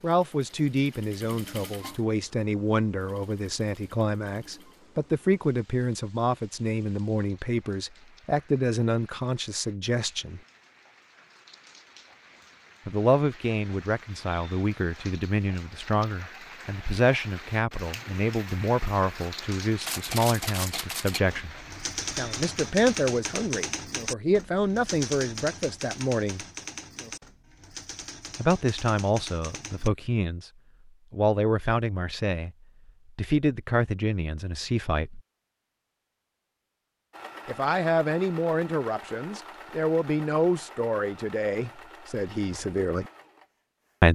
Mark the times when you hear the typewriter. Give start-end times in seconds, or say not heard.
19.6-29.9.